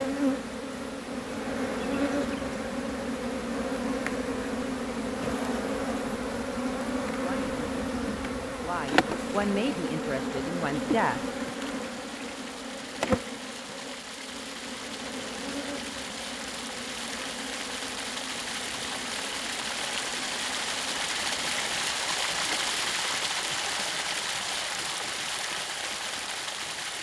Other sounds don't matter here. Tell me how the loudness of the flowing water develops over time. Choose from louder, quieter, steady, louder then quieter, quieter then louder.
louder.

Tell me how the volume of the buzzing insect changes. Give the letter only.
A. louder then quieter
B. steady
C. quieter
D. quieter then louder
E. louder
C.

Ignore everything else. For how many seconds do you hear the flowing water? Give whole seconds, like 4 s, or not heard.
27 s.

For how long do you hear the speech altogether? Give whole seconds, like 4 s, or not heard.
4 s.